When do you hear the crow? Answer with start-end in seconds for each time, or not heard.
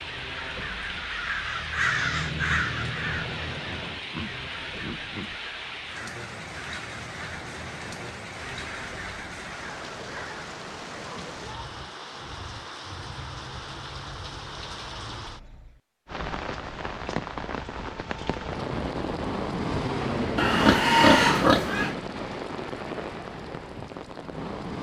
0.0-10.6.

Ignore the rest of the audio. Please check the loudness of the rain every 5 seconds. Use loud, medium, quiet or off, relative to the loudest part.
medium, medium, medium, loud, loud.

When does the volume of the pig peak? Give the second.
21 s.